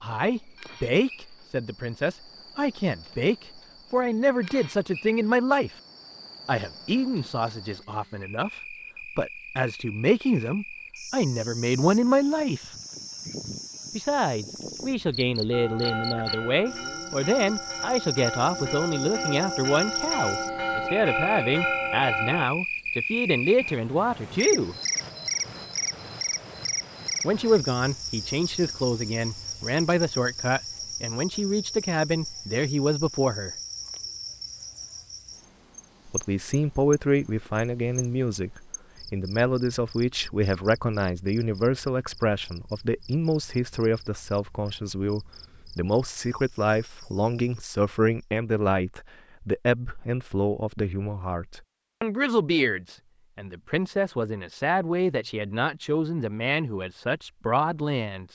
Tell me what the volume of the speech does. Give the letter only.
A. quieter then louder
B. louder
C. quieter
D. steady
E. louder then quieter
D.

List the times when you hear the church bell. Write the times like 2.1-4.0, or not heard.
15.5-22.4.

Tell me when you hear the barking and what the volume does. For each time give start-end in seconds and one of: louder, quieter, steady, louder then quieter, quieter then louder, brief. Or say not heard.
not heard.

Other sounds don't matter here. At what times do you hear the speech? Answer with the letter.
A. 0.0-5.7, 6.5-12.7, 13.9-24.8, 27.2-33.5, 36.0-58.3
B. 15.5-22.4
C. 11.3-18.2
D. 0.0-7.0
A.